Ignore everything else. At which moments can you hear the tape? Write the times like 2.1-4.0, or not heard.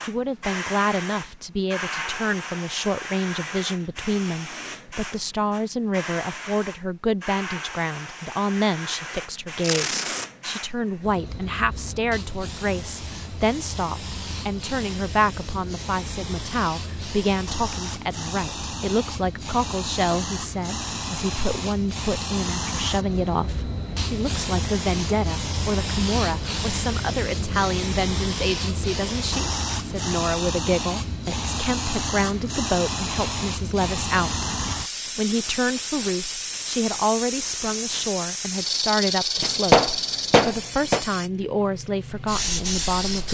9.6-10.2.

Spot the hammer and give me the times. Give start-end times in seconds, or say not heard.
39.4-41.0.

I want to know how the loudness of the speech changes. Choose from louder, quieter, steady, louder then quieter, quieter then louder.
steady.